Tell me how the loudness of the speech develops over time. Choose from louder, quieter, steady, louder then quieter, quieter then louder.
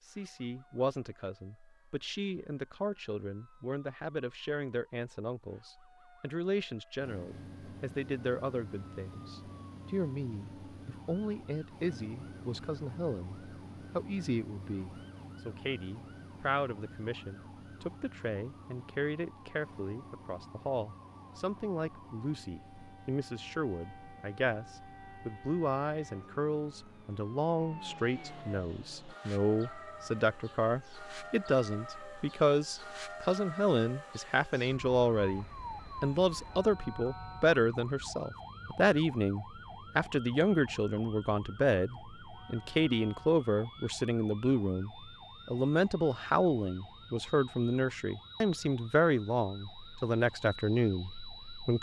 louder.